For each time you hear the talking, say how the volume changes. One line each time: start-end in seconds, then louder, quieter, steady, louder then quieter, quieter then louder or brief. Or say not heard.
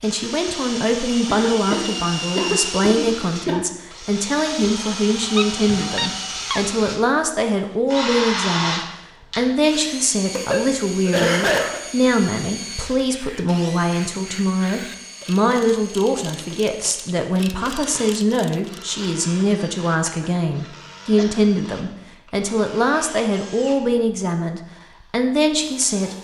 0.0-26.1 steady.